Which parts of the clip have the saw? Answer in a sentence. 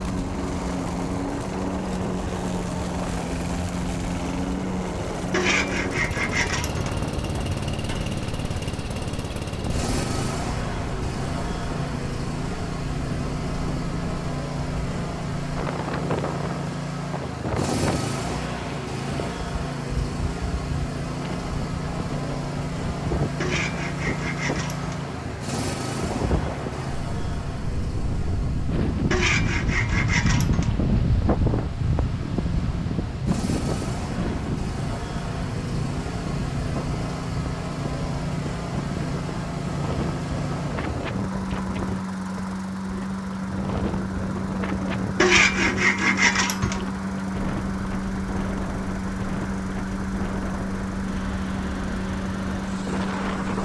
You can hear the saw from 5.3 to 7.0 s, from 23.4 to 24.9 s, from 29.1 to 30.8 s and from 45.1 to 46.9 s.